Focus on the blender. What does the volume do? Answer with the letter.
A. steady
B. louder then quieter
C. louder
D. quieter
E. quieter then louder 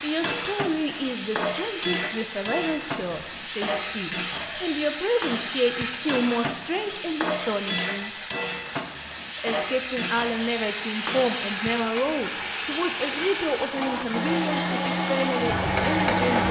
C.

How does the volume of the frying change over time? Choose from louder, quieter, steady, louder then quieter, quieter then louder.
steady.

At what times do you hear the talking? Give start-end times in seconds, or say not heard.
0.0-8.1, 9.3-16.4.